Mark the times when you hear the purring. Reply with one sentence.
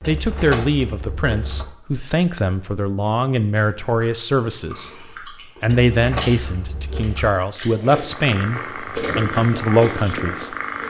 You can hear the purring from 8.1 to 10.8 s.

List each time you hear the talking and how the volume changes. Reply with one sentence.
The talking can be heard from 0.1 to 10.6 s, at a steady volume.